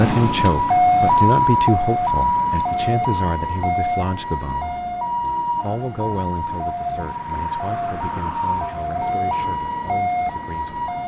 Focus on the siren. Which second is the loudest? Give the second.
1 s.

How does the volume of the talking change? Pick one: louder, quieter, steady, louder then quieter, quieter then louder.
quieter.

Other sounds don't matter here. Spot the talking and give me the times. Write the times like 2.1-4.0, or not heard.
0.0-4.8, 5.6-10.9.